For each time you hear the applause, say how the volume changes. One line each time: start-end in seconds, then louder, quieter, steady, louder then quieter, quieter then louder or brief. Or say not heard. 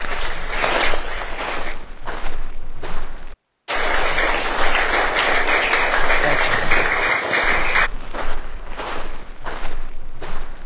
0.0-1.8 brief
3.6-7.9 steady.